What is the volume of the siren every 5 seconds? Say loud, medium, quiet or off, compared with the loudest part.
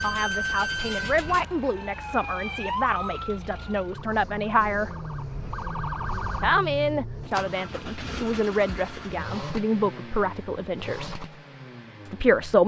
loud, loud, off.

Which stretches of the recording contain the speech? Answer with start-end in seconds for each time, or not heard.
0.0-4.9, 6.4-11.2, 12.1-12.6.